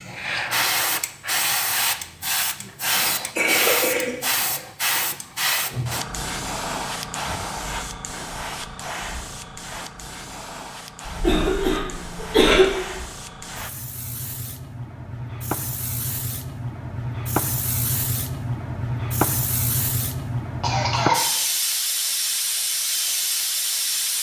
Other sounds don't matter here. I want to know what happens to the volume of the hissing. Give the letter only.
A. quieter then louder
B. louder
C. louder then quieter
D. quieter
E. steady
A.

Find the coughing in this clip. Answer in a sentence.
The coughing can be heard from 3.0 to 4.6 s, from 11.1 to 12.7 s and from 20.6 to 21.2 s.